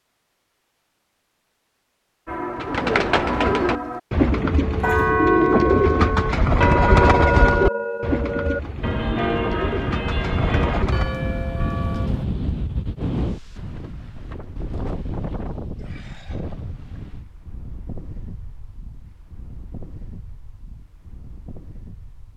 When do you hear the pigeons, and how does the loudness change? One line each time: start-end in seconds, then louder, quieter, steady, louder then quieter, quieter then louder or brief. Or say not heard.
2.5-11.2 quieter.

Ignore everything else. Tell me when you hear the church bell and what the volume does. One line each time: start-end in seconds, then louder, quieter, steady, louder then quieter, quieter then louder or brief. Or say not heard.
2.2-12.2 louder then quieter.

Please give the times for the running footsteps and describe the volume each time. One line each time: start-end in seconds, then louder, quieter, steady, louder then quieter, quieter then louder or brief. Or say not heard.
not heard.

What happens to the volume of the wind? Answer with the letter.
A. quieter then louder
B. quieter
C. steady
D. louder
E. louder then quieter
B.